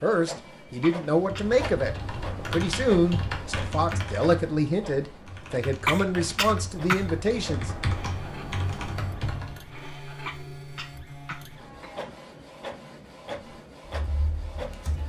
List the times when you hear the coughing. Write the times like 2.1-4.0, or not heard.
0.8-1.4, 5.8-7.2, 10.2-12.0.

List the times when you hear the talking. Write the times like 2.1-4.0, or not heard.
0.0-7.7.